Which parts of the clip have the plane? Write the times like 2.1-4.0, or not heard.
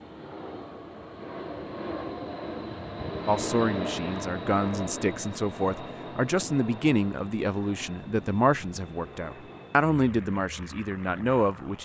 0.0-11.8.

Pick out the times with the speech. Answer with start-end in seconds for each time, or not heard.
3.2-11.8.